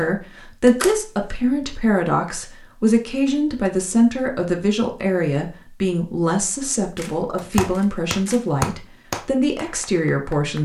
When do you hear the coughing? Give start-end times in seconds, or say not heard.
not heard.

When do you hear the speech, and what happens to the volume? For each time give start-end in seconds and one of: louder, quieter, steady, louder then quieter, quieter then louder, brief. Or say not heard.
0.0-10.6 steady.